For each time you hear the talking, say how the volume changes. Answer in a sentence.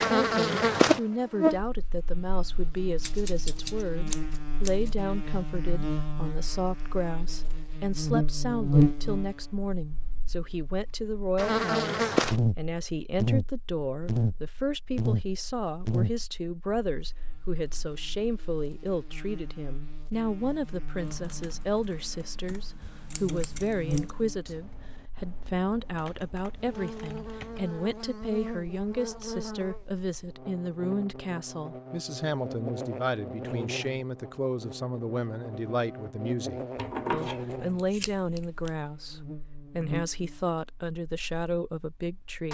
The talking can be heard from 0.0 to 42.4 s, at a steady volume.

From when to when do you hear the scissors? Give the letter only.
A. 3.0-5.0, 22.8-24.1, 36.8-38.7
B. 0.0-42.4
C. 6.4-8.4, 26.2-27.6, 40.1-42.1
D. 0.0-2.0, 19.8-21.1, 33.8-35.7
A.